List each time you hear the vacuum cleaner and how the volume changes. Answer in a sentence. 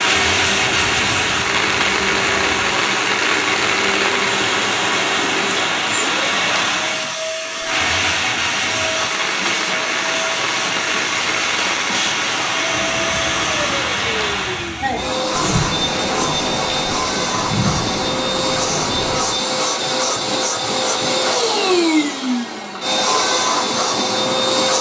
You can hear the vacuum cleaner from 0.0 to 24.7 s, getting louder.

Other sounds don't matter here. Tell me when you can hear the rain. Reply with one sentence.
The rain can be heard from 0.0 to 19.4 s.